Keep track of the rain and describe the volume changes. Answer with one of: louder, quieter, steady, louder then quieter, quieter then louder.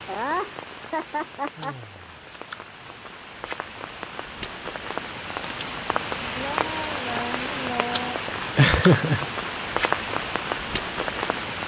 louder.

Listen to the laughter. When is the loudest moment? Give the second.
9 s.